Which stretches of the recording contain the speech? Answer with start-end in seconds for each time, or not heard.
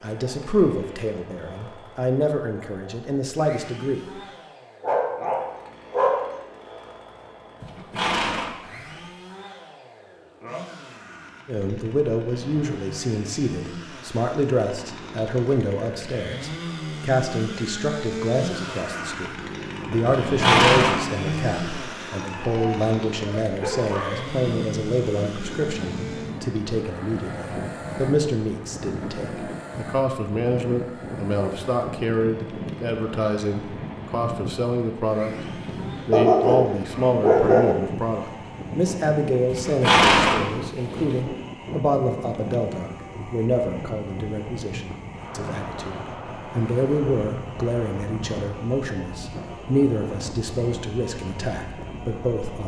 0.0-4.0, 11.4-52.6.